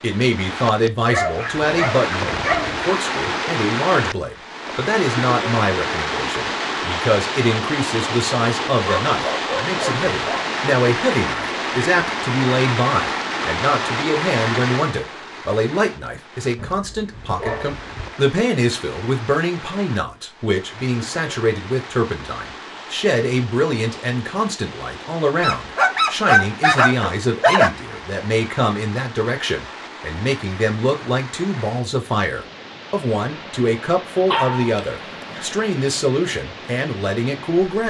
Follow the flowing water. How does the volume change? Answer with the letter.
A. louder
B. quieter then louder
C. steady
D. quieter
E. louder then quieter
D.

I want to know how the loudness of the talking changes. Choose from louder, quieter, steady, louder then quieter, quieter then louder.
steady.